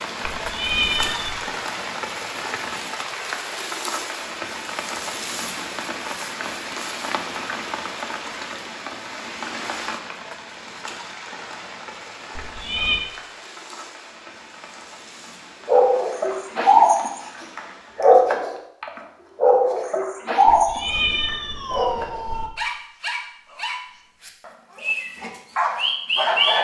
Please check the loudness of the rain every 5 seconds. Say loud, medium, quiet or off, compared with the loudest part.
loud, loud, medium, quiet, off, off.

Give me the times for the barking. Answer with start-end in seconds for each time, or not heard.
15.7-26.5.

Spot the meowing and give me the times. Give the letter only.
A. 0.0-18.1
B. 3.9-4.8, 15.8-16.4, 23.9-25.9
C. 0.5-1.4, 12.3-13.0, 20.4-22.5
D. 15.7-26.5
C.